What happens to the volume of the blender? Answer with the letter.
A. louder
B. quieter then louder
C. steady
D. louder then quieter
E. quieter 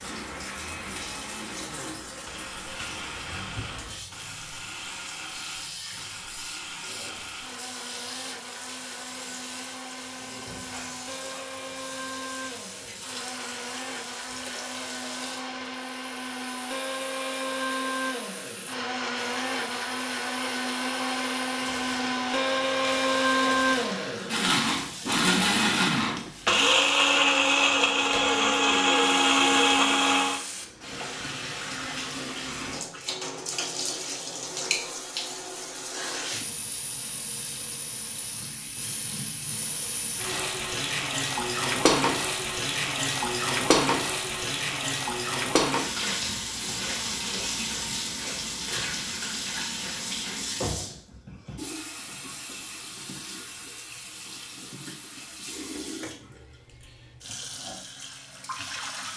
A.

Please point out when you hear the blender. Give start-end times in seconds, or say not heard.
0.0-30.4.